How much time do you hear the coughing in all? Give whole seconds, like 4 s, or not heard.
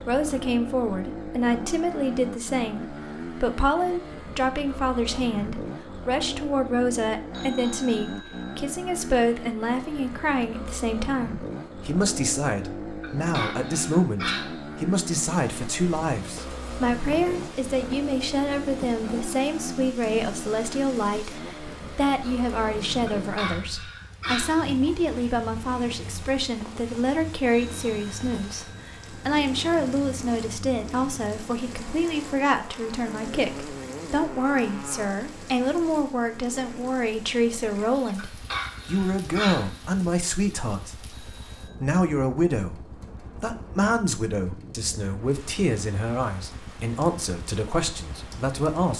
5 s.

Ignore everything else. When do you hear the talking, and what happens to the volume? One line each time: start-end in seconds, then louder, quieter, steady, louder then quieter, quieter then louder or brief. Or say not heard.
0.1-48.9 steady.